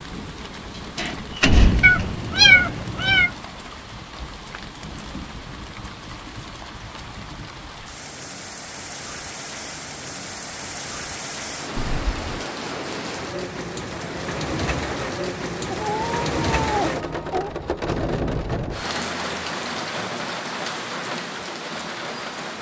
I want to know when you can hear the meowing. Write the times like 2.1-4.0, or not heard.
1.8-3.3, 11.8-12.4, 15.7-17.5.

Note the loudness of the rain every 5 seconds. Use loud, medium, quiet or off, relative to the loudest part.
medium, medium, loud, loud, loud.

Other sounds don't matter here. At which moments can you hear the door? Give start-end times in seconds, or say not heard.
0.9-2.2.